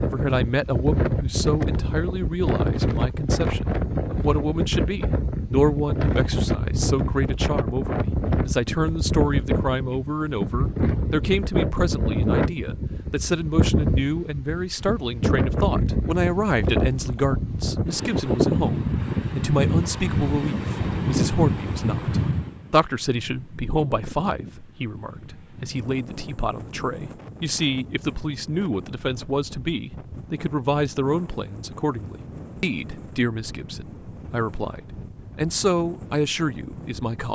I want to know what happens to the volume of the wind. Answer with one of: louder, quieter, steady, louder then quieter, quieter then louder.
quieter.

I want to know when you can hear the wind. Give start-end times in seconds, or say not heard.
0.0-37.3.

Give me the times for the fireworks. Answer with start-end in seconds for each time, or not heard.
not heard.